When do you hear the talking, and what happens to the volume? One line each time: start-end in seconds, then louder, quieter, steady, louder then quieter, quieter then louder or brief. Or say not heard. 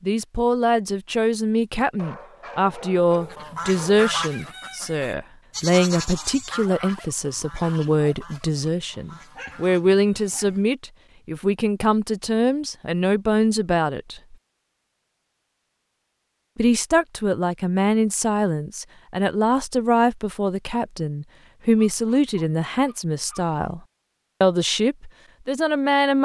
0.0-14.3 steady
16.6-23.8 steady
24.4-26.1 brief.